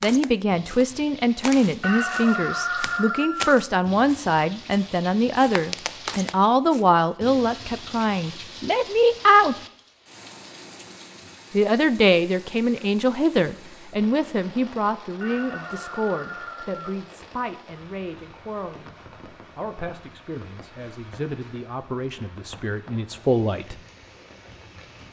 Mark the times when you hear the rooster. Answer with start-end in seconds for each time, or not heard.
1.8-3.5, 15.2-16.9.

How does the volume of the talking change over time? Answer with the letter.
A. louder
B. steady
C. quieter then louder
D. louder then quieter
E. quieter
E.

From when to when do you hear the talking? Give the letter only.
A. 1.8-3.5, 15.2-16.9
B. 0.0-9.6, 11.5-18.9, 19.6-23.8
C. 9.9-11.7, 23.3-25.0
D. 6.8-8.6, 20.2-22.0
B.